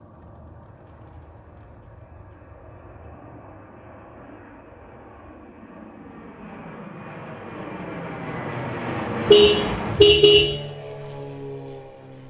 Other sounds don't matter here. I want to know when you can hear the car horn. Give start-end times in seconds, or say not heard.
9.2-10.6.